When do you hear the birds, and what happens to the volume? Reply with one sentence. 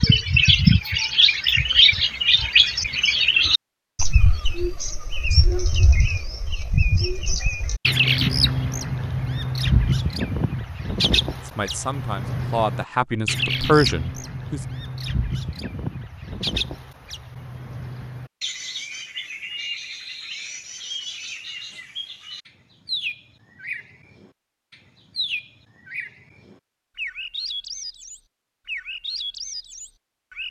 You can hear the birds from 0.0 to 30.4 s, getting quieter.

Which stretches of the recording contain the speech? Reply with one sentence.
The speech can be heard from 11.6 to 14.6 s.